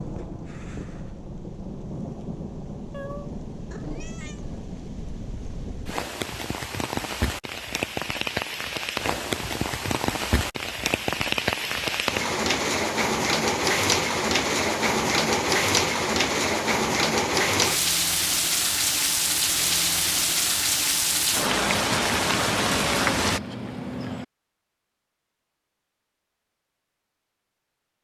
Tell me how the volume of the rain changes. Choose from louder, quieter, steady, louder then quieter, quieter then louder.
louder.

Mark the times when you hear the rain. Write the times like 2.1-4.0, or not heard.
0.0-23.4.